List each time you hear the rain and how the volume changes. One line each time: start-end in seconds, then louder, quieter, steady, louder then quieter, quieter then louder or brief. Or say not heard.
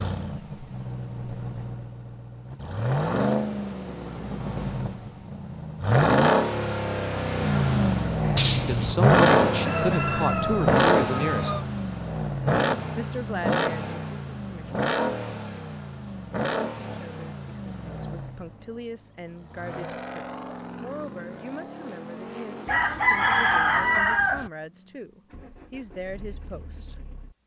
not heard.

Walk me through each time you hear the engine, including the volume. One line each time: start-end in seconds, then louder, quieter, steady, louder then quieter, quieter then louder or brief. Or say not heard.
0.0-27.4 louder then quieter.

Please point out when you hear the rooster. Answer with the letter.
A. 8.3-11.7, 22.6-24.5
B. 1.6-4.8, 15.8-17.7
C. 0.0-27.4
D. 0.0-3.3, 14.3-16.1
A.